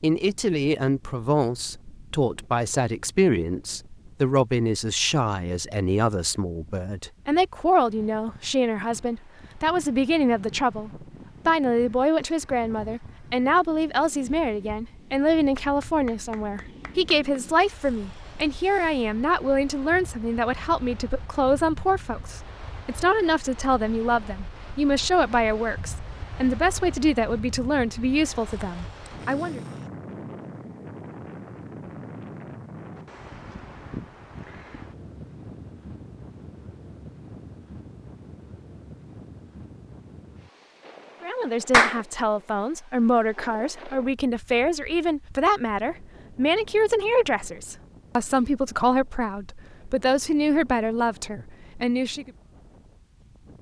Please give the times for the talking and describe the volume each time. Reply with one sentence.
The talking can be heard from 0.0 to 29.6 s, at a steady volume; and from 41.2 to 52.3 s, at a steady volume.